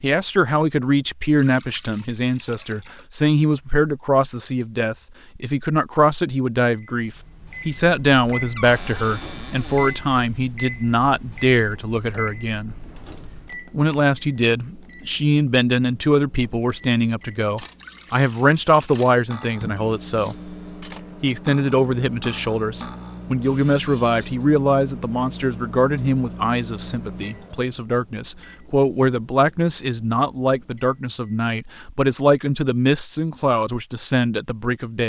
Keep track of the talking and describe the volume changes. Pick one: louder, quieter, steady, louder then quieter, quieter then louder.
steady.